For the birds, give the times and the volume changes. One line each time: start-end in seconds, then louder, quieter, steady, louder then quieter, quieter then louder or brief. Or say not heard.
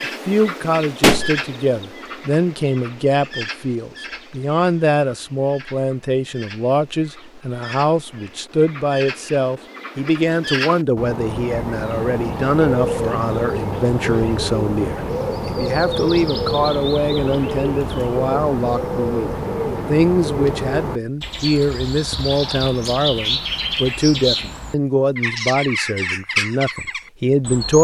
0.0-27.7 louder.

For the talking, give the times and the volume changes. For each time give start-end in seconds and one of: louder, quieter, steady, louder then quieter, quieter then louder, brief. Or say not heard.
0.2-27.7 steady.